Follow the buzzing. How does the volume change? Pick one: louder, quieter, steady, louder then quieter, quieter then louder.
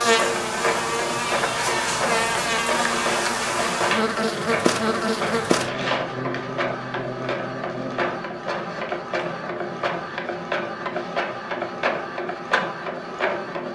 quieter.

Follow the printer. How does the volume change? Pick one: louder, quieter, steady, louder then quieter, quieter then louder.
steady.